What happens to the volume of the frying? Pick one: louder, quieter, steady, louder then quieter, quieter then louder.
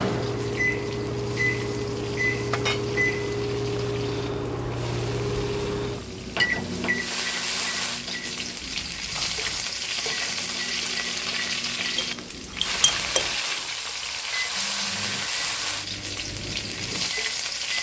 louder.